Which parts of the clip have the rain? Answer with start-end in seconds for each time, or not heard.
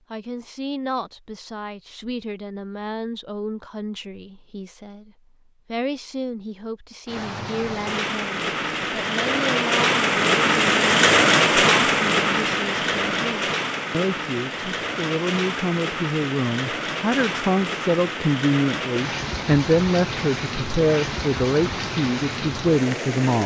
7.0-23.4.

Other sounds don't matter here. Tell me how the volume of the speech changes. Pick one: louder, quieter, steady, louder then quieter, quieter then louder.
louder.